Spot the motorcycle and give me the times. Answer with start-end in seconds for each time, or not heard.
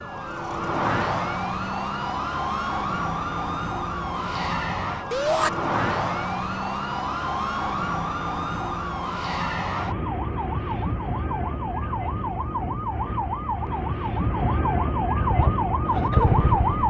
15.2-16.8.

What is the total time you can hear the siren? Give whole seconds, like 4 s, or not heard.
17 s.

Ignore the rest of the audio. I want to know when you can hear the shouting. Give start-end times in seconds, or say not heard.
5.1-5.5.